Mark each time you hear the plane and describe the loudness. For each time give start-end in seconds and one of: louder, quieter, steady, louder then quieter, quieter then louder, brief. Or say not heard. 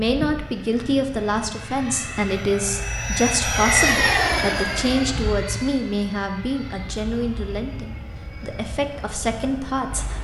0.0-10.1 louder then quieter.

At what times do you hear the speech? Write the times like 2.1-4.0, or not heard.
0.0-10.1.